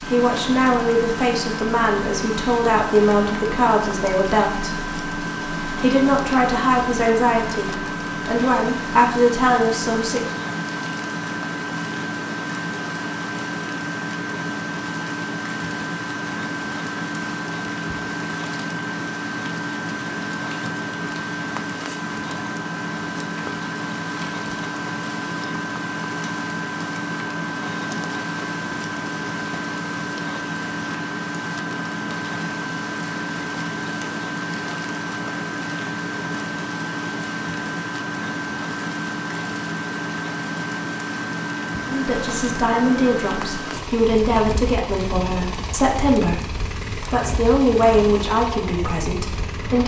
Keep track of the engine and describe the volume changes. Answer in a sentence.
The volume of the engine stays about the same.